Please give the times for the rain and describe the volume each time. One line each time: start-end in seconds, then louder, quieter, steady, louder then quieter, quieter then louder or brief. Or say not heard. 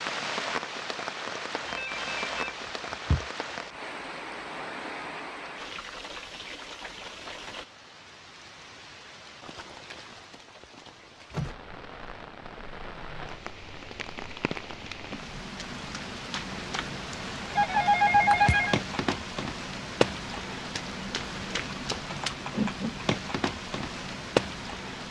0.0-25.0 quieter then louder.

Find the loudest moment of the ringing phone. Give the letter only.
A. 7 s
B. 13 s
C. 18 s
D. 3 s
C.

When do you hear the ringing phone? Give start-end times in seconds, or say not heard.
1.6-3.2, 17.6-18.8.